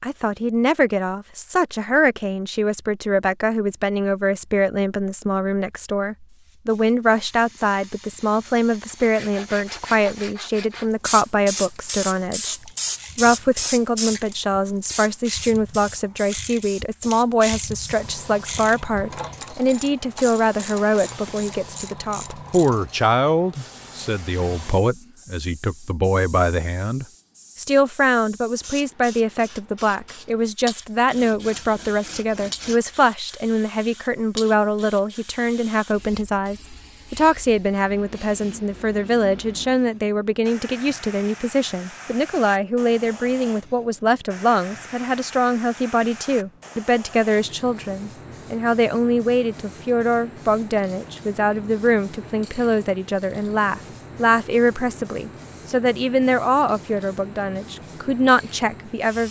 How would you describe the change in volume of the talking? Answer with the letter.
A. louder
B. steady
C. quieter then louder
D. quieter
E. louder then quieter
B.